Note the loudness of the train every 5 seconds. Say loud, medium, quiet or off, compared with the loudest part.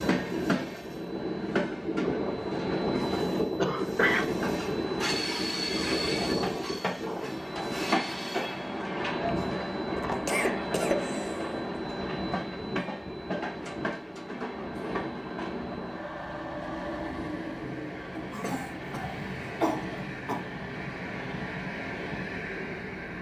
loud, loud, loud, medium, medium.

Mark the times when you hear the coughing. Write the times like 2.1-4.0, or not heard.
3.5-4.5, 9.9-11.6, 18.1-20.6.